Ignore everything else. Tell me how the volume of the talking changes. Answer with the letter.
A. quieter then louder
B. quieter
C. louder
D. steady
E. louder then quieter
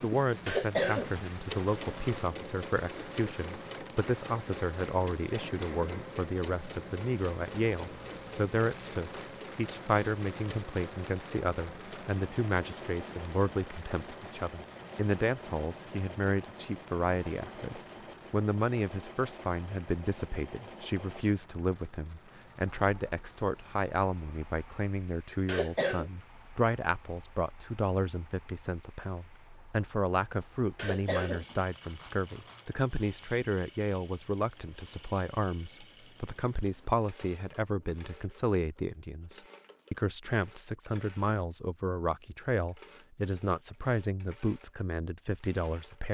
D.